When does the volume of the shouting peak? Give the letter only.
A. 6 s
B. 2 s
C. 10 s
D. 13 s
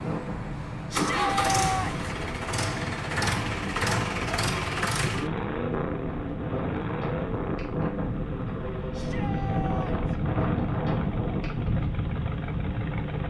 B.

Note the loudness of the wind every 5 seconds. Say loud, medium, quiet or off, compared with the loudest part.
medium, loud, loud.